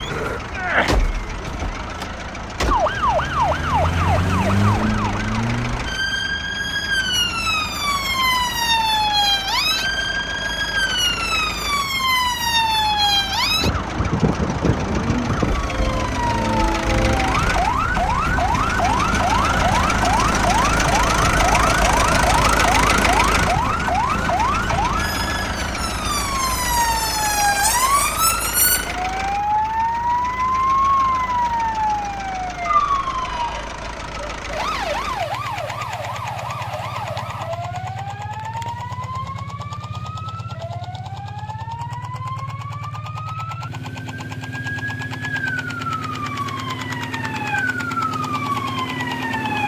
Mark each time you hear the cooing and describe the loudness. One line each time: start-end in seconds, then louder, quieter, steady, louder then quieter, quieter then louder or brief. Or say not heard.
not heard.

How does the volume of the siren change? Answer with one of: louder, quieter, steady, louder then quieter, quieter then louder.
quieter.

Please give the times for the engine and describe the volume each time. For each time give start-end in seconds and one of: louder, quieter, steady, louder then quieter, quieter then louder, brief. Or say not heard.
0.0-49.6 louder then quieter.